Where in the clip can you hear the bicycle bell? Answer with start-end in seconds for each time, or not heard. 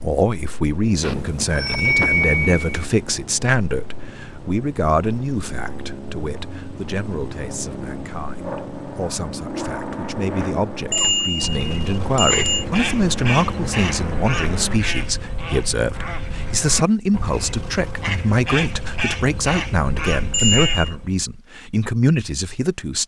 1.0-2.9, 10.9-12.7, 20.3-20.9.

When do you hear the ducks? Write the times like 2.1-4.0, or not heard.
10.9-21.1.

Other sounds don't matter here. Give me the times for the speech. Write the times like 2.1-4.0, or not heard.
0.0-23.0.